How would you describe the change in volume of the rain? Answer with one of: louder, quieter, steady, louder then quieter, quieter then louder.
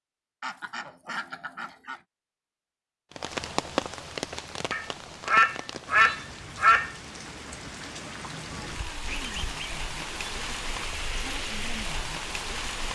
quieter then louder.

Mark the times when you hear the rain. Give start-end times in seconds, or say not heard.
3.1-12.9.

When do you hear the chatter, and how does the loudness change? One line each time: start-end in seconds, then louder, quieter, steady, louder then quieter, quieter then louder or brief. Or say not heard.
not heard.